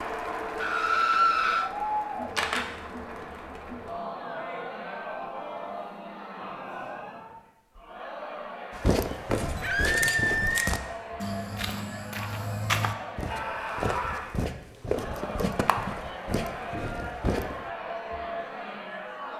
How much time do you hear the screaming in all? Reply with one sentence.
You can hear the screaming for 3 seconds altogether.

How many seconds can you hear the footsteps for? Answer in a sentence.
You can hear the footsteps for 9 seconds altogether.